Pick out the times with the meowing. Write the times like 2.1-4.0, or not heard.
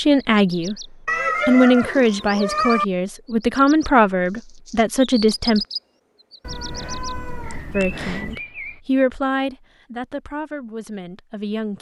1.1-2.9, 6.4-8.4.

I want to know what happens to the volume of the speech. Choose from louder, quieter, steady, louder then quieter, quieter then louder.
quieter.